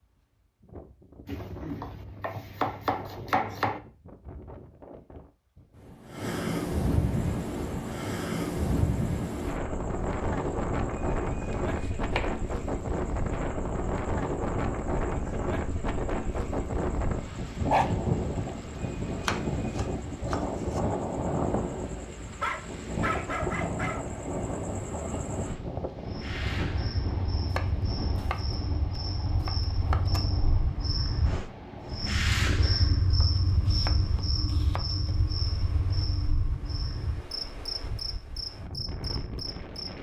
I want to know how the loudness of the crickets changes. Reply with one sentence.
The volume of the crickets goes up.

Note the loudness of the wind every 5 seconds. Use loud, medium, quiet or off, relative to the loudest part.
quiet, loud, loud, loud, loud, medium, quiet, quiet.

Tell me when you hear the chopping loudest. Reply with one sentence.
The loudest moment of the chopping is at 3 seconds.